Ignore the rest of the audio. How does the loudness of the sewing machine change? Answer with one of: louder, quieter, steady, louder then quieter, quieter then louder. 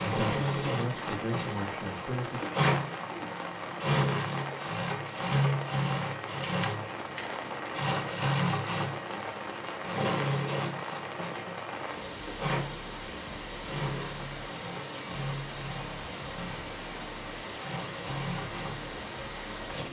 quieter.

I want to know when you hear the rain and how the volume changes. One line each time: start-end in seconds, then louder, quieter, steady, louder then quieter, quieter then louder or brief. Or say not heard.
0.2-19.8 steady.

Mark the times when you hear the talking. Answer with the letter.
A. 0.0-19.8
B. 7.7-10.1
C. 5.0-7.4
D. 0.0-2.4
D.